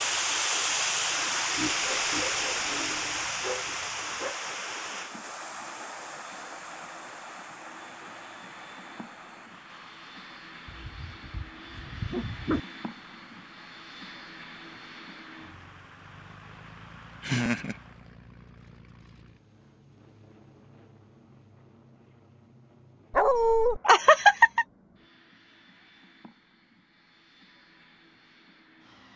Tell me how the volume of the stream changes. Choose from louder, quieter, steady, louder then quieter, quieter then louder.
quieter.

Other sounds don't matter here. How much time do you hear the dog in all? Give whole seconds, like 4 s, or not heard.
5 s.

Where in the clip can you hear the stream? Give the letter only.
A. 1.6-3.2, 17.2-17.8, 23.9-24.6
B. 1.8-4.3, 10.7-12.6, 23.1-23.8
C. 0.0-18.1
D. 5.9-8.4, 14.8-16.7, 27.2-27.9
C.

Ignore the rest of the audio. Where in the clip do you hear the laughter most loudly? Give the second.
24 s.